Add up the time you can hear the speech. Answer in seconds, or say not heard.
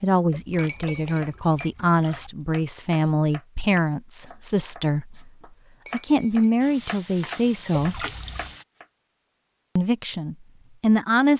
9 s.